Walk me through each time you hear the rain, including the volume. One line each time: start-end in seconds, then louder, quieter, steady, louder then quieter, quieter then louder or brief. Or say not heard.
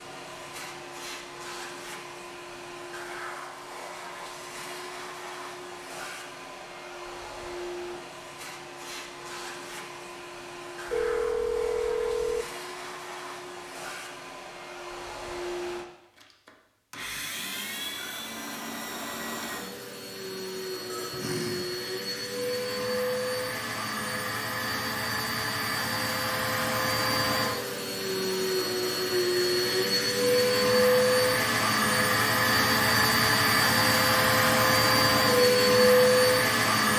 not heard.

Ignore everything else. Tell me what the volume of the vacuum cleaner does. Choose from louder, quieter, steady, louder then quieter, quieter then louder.
louder.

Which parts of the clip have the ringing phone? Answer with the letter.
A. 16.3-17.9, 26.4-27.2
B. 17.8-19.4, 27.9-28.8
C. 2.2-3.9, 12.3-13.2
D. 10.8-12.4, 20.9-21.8
D.